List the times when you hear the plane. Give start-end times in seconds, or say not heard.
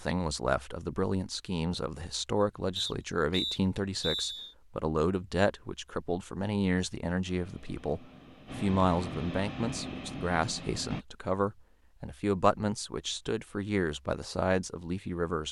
7.2-11.1.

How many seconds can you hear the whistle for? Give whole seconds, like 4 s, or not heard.
2 s.